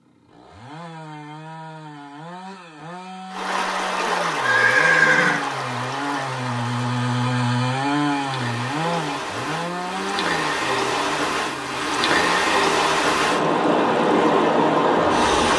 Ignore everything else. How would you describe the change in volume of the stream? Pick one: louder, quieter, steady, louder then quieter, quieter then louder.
quieter then louder.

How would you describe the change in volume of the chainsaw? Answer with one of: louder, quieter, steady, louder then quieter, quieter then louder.
louder then quieter.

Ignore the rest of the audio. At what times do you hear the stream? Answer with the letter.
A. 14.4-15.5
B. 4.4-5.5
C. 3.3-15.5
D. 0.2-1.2
C.